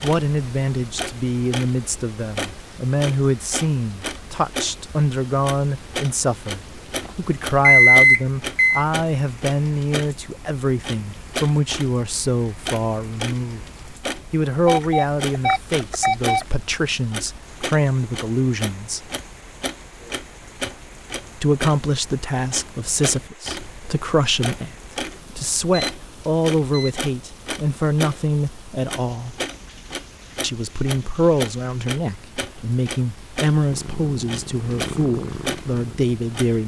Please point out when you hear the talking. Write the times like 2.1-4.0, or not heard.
0.0-13.6, 14.3-19.1, 21.4-29.4, 30.4-36.6.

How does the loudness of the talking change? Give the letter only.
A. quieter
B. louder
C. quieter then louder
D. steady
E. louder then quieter
D.